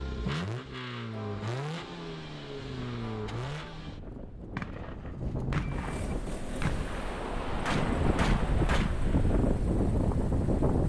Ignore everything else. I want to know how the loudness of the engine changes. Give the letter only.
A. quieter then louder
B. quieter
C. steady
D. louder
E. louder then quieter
B.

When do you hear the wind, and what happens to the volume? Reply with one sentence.
The wind can be heard from 2.0 to 10.8 s, getting louder.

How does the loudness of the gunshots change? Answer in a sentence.
The volume of the gunshots goes down, then up.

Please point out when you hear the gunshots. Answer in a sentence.
The gunshots can be heard from 4.5 to 8.9 s.